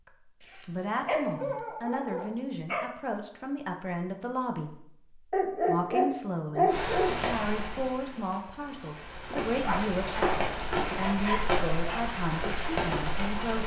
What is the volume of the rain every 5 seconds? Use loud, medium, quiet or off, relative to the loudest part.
off, medium, loud.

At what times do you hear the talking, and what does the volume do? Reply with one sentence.
You can hear the talking from 0.1 to 13.6 s, at a steady volume.